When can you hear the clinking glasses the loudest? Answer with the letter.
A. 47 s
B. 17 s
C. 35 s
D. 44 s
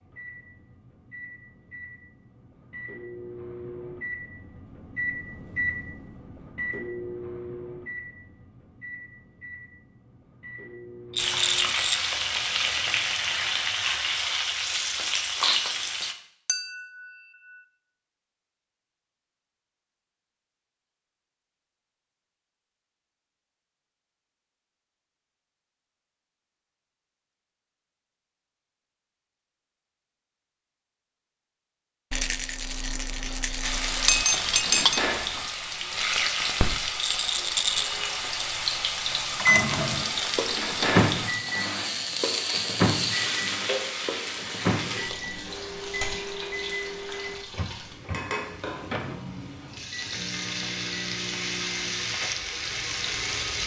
C.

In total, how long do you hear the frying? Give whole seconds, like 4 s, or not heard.
25 s.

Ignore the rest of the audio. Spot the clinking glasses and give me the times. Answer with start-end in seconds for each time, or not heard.
16.4-17.1, 34.0-35.5.